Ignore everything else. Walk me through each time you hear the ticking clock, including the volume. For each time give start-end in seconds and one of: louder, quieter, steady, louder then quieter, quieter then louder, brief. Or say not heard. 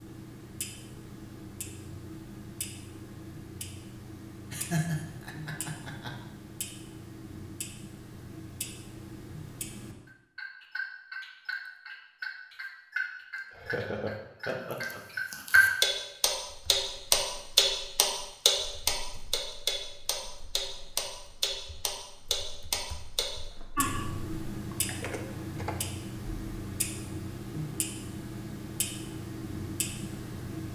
0.0-30.6 louder then quieter.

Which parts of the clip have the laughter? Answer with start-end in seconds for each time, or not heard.
4.5-6.1, 13.3-15.0, 23.8-24.2.